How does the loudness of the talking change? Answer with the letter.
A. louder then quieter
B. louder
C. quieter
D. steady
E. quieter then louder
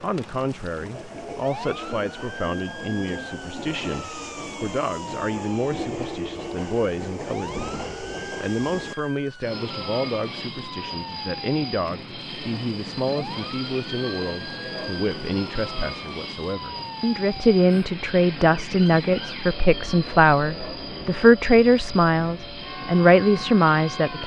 B.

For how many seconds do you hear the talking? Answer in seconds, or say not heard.
24 s.